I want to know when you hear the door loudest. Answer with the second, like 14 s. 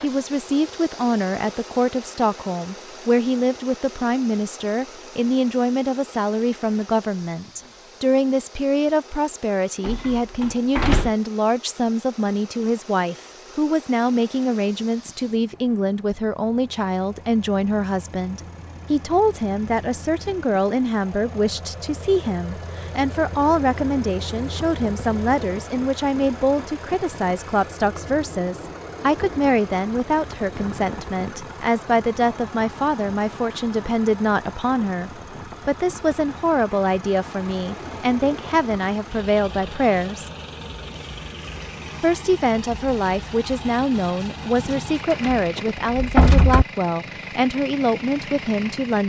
46 s.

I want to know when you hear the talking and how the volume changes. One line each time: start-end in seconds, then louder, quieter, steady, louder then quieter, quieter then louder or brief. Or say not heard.
0.0-40.3 steady
42.0-49.0 steady.